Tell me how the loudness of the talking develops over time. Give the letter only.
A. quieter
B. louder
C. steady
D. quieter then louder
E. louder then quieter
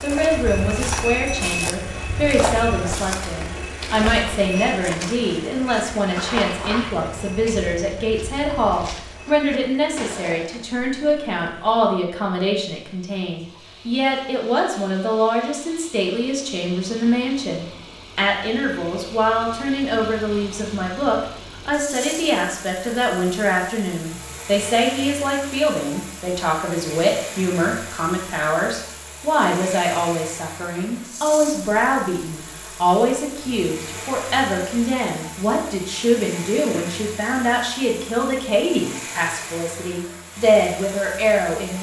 C.